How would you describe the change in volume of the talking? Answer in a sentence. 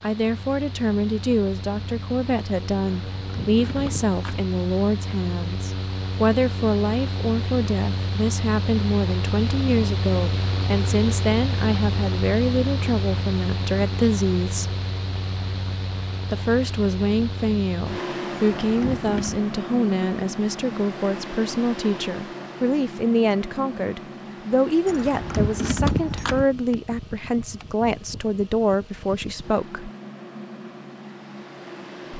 The volume of the talking stays about the same.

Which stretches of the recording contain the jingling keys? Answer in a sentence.
You can hear the jingling keys from 2.9 to 4.5 s, from 18.6 to 19.4 s and from 24.9 to 26.4 s.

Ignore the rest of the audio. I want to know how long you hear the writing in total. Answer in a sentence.
You can't hear the writing here.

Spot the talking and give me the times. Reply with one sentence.
The talking can be heard from 0.0 to 14.8 s and from 16.3 to 29.9 s.